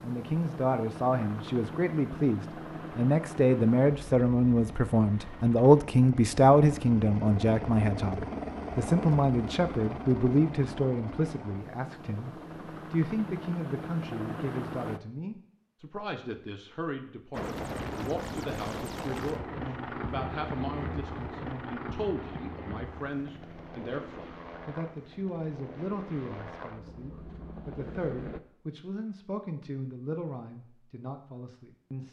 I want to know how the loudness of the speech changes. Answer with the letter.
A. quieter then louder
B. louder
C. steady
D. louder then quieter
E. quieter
E.